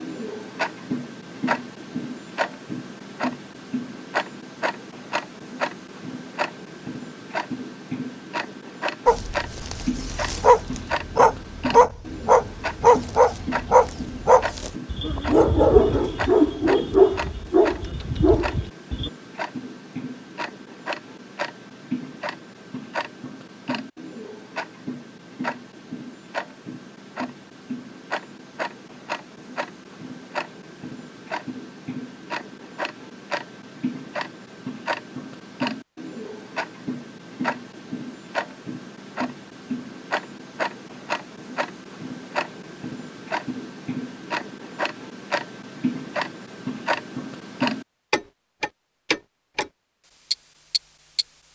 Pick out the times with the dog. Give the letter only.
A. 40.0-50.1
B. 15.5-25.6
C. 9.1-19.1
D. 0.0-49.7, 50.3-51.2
C.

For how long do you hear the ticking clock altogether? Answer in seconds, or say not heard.
51 s.